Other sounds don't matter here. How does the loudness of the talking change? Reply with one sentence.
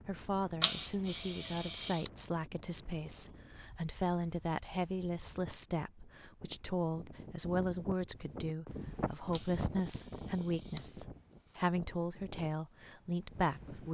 The loudness of the talking stays about the same.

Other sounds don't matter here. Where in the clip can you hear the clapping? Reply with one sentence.
The clapping can't be heard in this clip.